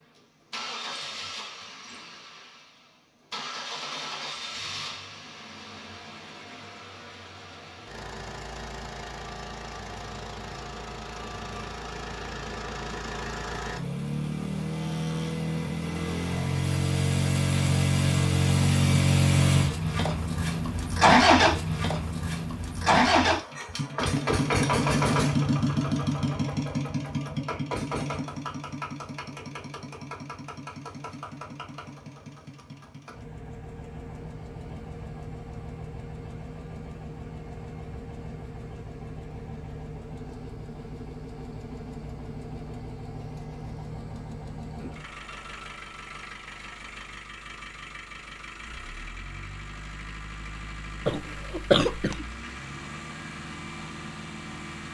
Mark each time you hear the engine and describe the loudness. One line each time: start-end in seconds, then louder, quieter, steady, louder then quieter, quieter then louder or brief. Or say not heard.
0.0-54.8 louder then quieter.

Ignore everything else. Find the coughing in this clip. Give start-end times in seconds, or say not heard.
51.0-52.2.